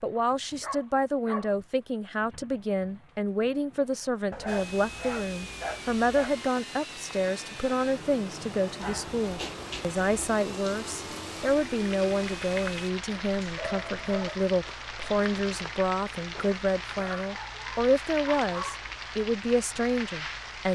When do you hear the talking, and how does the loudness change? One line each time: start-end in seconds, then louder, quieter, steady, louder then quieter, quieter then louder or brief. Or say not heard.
0.0-20.7 steady.